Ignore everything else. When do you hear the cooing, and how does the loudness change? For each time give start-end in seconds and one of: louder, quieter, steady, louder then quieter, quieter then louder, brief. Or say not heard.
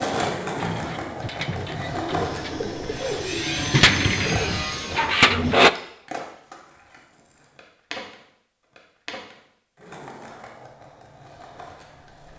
0.5-5.7 louder.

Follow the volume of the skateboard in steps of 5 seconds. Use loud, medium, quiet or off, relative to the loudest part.
loud, medium, quiet.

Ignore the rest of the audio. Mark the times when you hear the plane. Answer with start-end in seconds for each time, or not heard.
2.9-5.2.